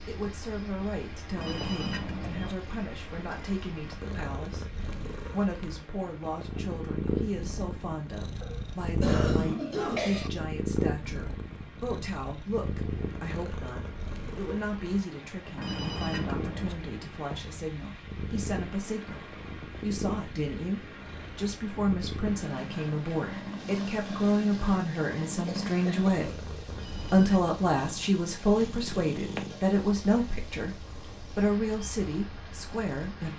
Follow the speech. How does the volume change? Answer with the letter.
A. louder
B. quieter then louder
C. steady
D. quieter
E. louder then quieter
A.